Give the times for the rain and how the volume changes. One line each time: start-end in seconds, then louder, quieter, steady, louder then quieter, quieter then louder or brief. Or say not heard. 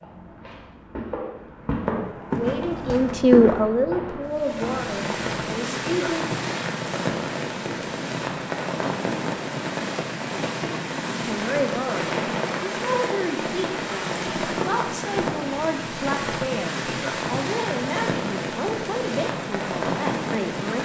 4.2-20.8 steady.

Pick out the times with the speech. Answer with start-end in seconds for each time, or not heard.
2.3-6.2, 11.2-20.8.